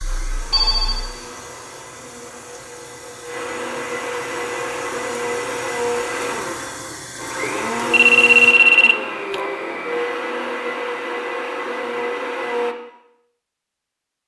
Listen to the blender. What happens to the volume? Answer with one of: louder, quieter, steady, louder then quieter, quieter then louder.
louder.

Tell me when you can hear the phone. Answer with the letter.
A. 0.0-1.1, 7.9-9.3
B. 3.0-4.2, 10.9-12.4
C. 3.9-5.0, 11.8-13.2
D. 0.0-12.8
A.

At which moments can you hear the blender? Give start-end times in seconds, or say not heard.
0.0-12.8.